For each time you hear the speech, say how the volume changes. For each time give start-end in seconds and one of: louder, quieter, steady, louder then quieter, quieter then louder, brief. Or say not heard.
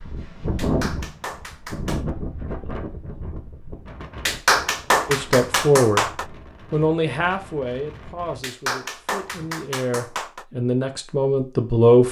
5.0-6.1 brief
6.7-12.0 quieter then louder.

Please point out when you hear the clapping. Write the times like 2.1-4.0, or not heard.
0.6-2.0, 4.2-6.2, 8.4-10.4.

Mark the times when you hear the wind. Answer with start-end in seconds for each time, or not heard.
0.0-9.5.